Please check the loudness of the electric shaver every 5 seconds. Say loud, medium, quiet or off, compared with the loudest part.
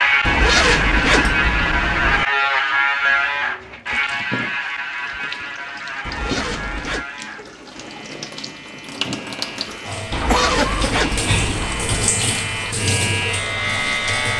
loud, quiet, medium.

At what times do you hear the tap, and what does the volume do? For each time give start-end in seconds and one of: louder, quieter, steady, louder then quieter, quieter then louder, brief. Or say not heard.
3.9-14.3 louder.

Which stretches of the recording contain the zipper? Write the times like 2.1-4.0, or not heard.
0.2-2.2, 6.0-7.0, 10.1-12.2.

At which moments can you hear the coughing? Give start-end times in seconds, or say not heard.
9.7-11.1.